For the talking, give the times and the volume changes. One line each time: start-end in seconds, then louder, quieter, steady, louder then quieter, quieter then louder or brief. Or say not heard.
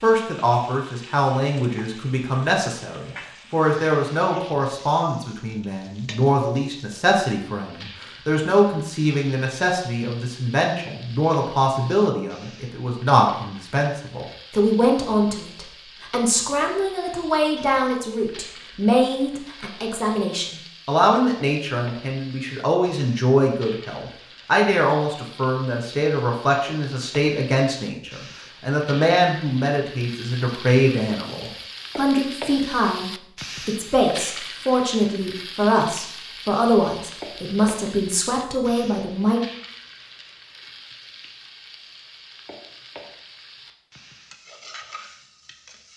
0.0-39.4 steady.